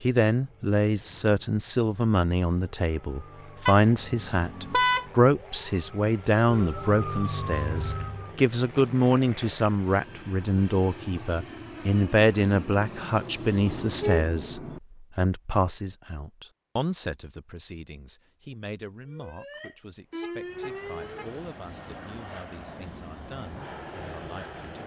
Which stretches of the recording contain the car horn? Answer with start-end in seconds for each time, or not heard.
3.6-5.0, 13.7-14.8, 20.2-21.3.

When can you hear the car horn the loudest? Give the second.
5 s.